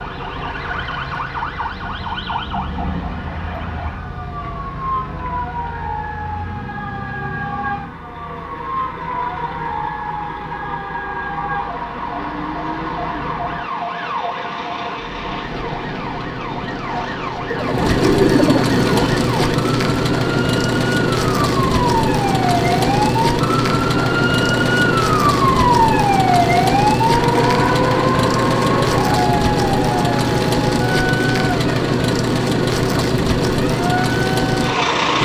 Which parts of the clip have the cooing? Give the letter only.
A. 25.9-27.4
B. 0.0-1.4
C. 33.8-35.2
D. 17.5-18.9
D.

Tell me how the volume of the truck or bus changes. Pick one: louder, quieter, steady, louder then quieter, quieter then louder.
louder.